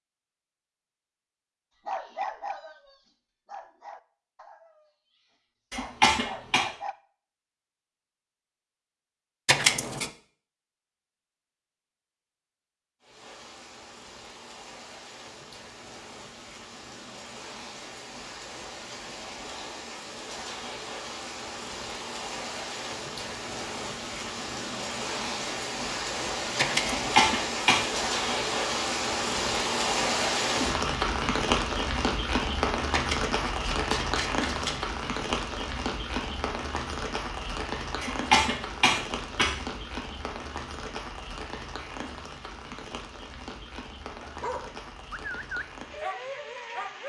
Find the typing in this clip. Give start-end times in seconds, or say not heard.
not heard.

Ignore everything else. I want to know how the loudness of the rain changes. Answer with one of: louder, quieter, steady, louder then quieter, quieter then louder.
louder then quieter.